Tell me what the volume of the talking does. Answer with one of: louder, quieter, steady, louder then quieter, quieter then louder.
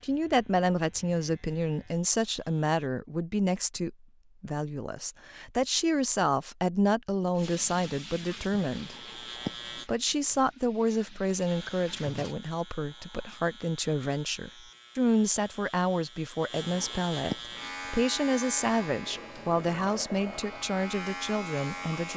steady.